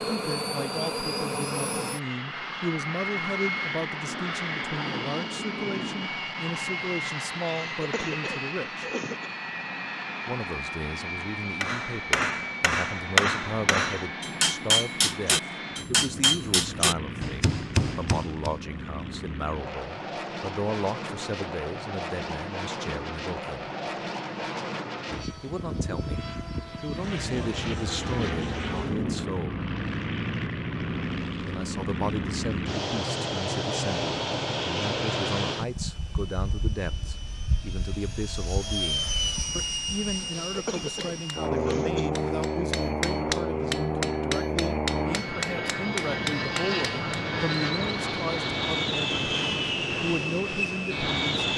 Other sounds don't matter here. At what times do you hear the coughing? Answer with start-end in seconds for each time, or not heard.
7.5-9.3, 40.5-42.2.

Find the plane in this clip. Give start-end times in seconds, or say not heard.
0.0-51.5.